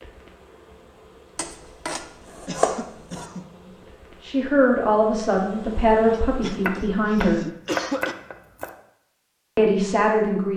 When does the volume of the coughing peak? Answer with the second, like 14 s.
8 s.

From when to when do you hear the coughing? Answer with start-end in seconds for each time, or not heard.
2.5-3.5, 6.1-8.2.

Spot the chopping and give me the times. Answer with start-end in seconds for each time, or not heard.
1.4-3.2, 6.6-8.7.